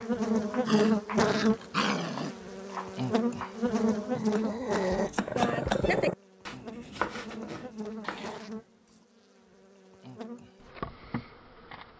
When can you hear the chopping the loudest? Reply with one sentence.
The volume of the chopping peaks at 6 seconds.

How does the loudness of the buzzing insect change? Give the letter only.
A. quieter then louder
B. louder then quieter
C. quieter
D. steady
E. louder
C.